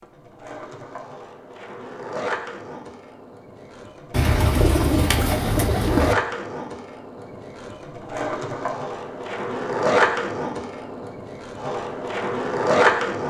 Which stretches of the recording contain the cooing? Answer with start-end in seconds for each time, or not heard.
4.1-6.2.